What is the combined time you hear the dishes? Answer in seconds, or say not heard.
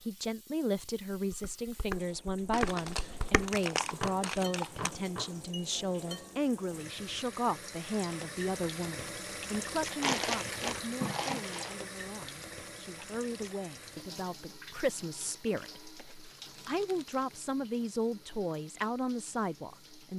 5 s.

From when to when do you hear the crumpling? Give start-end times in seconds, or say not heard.
2.5-4.9, 9.8-11.8, 15.6-17.2.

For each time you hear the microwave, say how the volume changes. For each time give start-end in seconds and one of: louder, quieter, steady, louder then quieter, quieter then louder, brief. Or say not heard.
not heard.